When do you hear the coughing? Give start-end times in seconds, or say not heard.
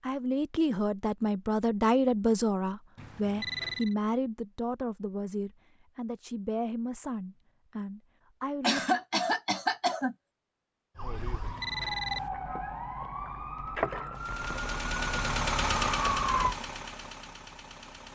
8.6-10.2.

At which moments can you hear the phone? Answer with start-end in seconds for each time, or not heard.
3.0-4.0, 11.2-12.3.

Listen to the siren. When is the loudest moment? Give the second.
16 s.